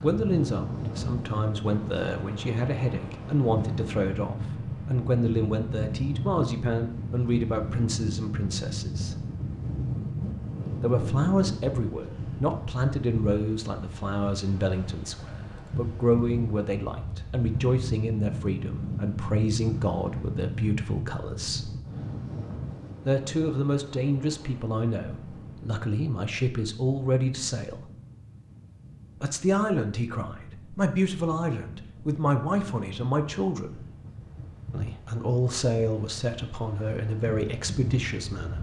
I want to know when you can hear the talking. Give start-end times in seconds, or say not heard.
0.0-9.2, 10.8-21.7, 23.1-27.9, 29.2-33.8, 34.7-38.5.